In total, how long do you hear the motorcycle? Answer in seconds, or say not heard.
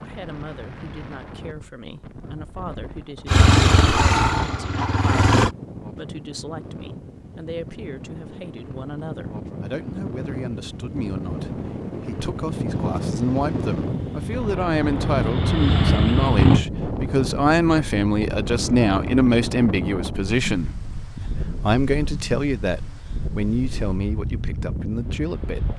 6 s.